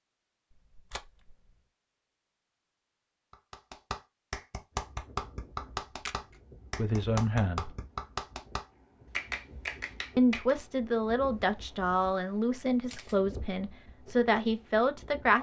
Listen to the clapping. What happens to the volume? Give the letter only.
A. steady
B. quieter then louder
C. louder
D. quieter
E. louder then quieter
A.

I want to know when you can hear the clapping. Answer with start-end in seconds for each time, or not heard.
3.3-10.6.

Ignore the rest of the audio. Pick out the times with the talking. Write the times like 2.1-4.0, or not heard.
6.8-7.7, 10.2-15.3.